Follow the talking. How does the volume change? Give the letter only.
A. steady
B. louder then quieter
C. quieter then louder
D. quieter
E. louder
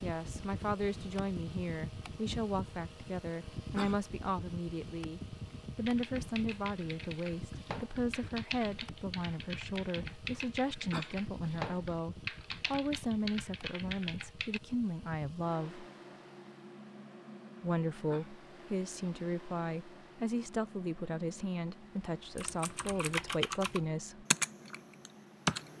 A.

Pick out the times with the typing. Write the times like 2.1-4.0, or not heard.
5.8-14.6, 22.4-25.7.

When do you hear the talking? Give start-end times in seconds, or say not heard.
0.0-15.8, 17.6-24.2.